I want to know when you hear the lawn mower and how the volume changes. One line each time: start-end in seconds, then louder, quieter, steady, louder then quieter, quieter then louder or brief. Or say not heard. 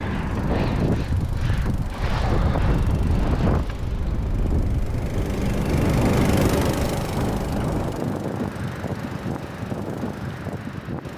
0.1-11.1 louder then quieter.